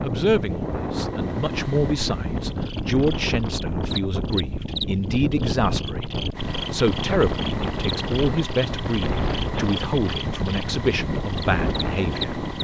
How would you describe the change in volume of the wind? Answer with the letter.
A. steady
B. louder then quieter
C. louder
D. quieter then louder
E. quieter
A.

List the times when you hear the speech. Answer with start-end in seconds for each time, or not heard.
0.0-12.4.